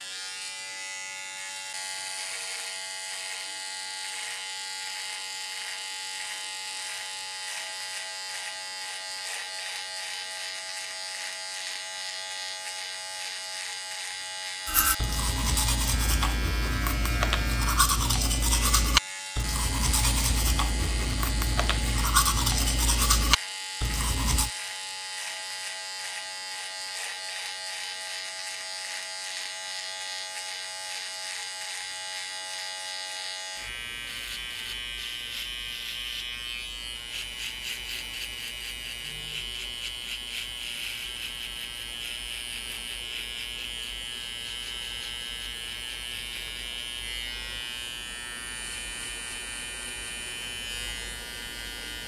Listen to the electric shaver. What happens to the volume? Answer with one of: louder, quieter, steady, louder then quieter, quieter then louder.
steady.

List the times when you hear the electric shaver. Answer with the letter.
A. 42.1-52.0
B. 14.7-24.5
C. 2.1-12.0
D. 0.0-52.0
D.